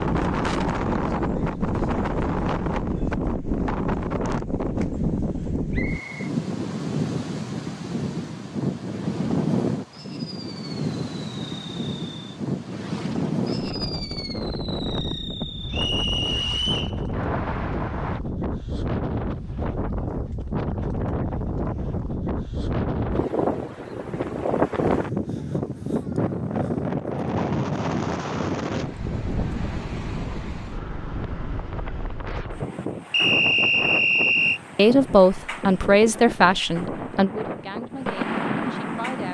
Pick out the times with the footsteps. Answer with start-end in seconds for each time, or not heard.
not heard.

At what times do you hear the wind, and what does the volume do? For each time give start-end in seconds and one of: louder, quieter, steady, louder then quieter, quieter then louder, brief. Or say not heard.
0.0-39.2 quieter.